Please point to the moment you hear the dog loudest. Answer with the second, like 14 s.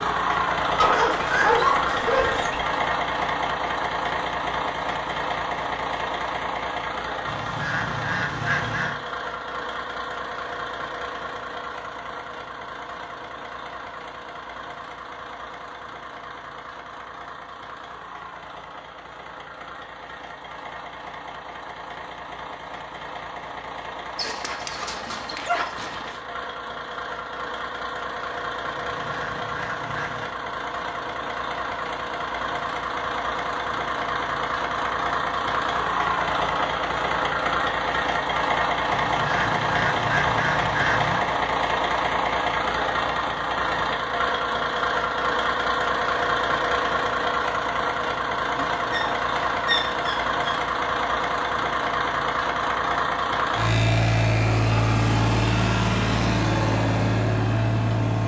2 s.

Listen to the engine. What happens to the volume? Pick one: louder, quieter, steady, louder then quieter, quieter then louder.
quieter then louder.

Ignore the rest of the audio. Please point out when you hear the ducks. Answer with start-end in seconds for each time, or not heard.
7.2-9.0, 28.8-30.4, 38.9-41.2.